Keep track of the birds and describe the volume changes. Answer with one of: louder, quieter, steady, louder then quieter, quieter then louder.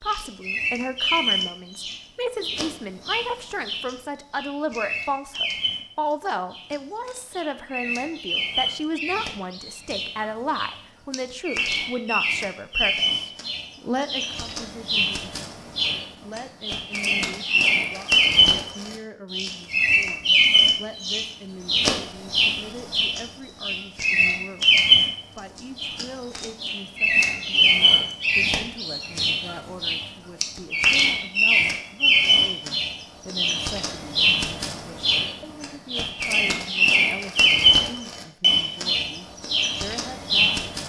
louder.